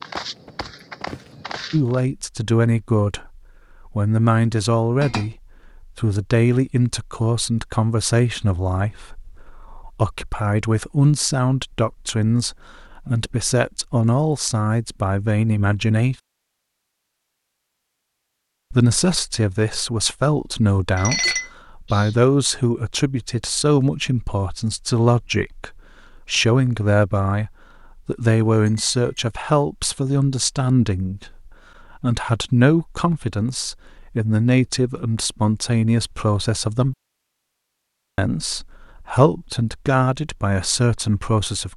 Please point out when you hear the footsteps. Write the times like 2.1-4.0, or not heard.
0.0-2.0.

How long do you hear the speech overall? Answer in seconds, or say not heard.
36 s.